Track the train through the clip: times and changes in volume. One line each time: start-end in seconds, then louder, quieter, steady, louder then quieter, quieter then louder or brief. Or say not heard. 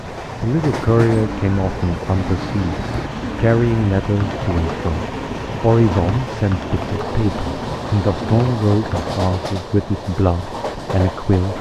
0.0-11.5 steady.